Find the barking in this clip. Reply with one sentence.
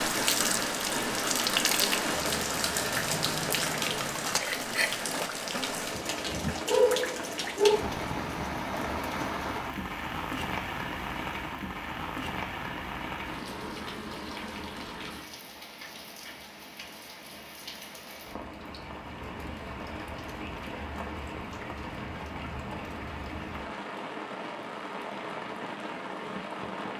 You can hear the barking from 6.7 to 7.8 s.